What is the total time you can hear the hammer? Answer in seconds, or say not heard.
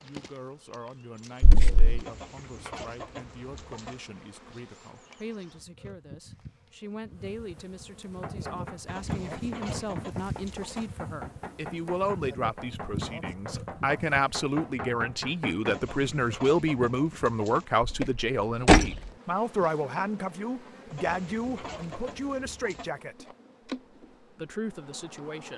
8 s.